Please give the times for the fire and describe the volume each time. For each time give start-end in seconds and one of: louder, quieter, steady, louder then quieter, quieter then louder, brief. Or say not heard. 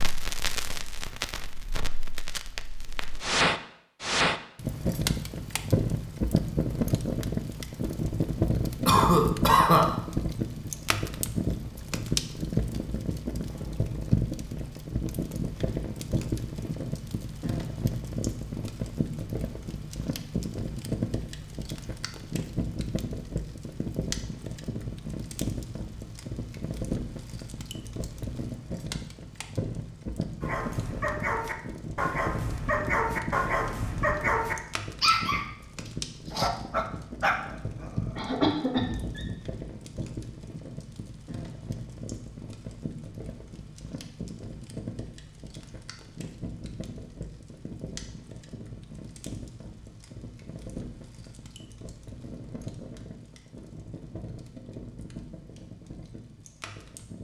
0.0-57.1 quieter.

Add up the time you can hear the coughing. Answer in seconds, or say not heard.
2 s.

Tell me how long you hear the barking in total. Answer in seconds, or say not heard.
9 s.